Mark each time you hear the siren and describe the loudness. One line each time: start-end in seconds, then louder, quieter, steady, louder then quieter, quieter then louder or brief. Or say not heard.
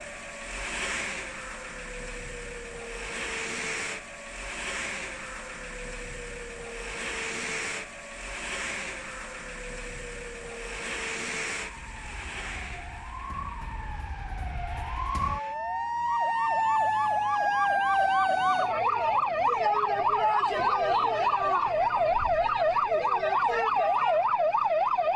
0.0-25.1 louder.